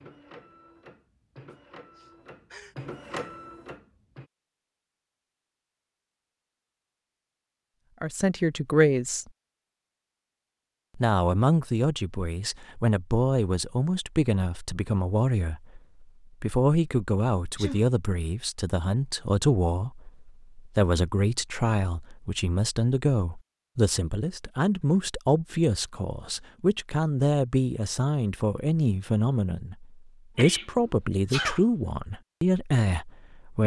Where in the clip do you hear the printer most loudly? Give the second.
3 s.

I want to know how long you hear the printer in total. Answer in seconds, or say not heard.
4 s.